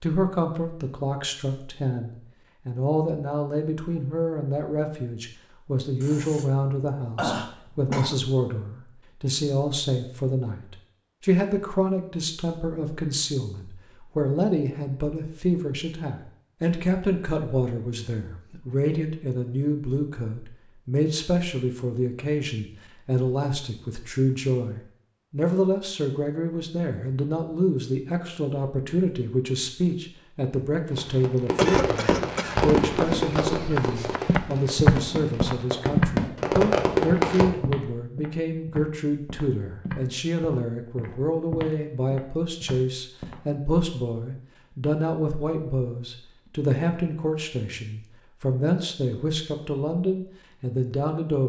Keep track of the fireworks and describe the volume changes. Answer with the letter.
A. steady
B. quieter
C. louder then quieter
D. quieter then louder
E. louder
D.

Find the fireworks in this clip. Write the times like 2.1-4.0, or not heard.
30.9-37.5.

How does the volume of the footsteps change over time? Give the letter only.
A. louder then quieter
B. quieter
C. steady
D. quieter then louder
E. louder
A.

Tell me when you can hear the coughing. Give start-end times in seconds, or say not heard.
6.0-8.2, 31.4-32.5.